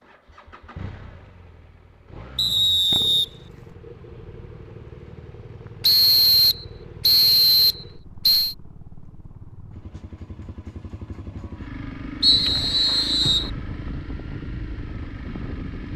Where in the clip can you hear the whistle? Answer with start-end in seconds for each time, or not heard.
2.4-3.2, 5.8-8.6, 12.2-13.5.